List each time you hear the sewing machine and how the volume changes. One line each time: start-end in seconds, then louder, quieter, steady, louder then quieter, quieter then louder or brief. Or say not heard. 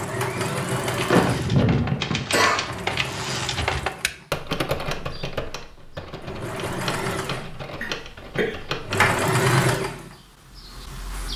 0.0-11.3 quieter then louder.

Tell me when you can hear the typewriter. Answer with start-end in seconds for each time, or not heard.
0.8-9.2.